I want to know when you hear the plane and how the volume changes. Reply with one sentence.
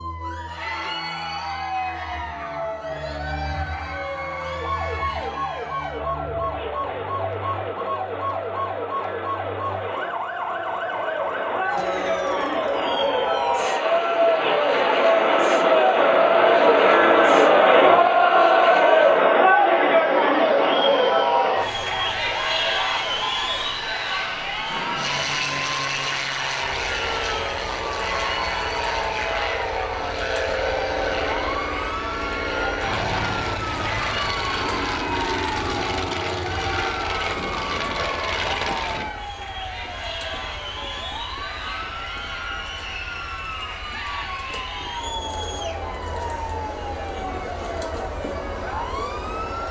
The plane can be heard from 24.6 to 39.1 s, at a steady volume.